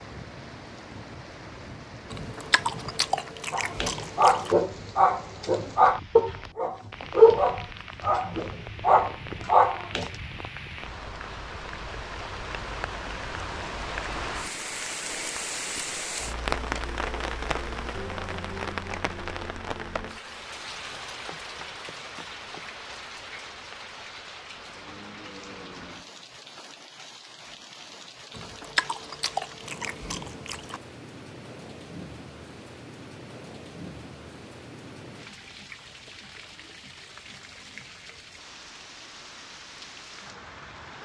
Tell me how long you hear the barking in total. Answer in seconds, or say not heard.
7 s.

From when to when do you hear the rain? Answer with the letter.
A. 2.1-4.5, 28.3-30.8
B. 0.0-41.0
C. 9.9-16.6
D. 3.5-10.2
B.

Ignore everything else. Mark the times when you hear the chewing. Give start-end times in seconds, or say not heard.
2.1-4.5, 28.3-30.8.